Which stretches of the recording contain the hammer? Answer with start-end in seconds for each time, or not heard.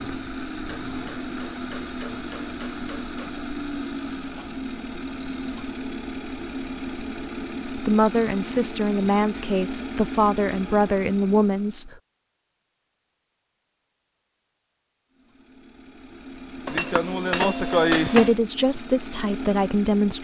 0.7-3.4, 16.6-18.4.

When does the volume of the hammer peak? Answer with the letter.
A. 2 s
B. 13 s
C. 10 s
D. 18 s
D.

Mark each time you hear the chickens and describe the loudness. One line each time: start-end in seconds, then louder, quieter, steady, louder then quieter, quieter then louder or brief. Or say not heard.
not heard.